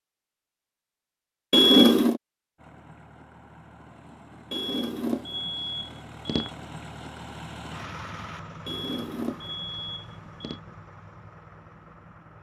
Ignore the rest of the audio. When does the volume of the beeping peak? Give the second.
2 s.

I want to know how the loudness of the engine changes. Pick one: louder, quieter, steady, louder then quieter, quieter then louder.
louder then quieter.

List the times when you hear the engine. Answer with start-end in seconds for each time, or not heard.
2.5-12.3.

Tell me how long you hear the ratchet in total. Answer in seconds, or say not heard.
not heard.